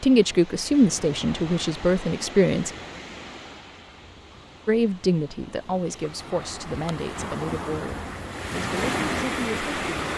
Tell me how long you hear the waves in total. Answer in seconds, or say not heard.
10 s.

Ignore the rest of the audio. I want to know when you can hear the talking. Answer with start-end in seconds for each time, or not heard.
0.0-2.7, 4.7-10.1.